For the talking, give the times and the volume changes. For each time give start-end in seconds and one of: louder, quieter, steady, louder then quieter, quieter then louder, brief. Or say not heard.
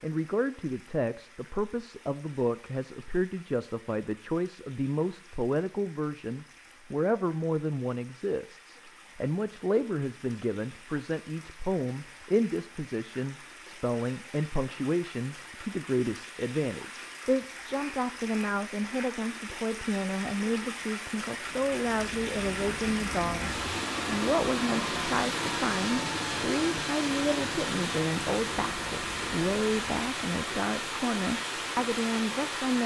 0.0-32.8 steady.